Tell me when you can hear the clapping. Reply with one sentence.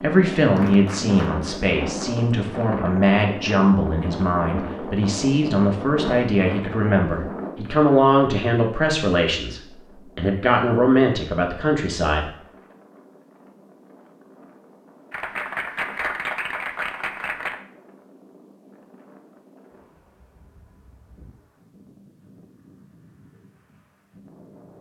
The clapping can be heard from 0.6 to 1.6 s and from 15.1 to 17.6 s.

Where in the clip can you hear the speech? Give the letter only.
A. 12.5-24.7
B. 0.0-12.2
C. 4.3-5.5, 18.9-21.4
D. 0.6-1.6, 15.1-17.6
B.